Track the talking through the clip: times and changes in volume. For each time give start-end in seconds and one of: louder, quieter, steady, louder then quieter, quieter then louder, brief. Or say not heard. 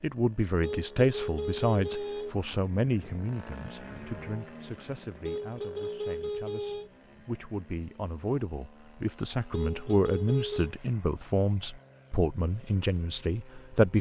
0.0-13.9 quieter then louder.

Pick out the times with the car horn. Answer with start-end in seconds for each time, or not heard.
0.6-2.4, 5.2-6.9, 9.5-10.8.